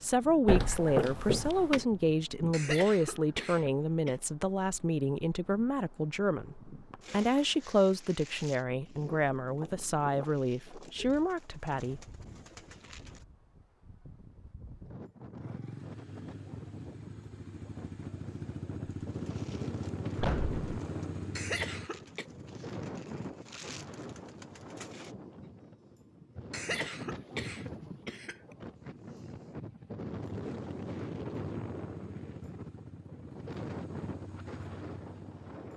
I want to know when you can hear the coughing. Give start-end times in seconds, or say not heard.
2.5-4.2, 21.4-22.2, 26.5-28.4.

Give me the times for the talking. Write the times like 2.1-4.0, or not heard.
0.0-12.0.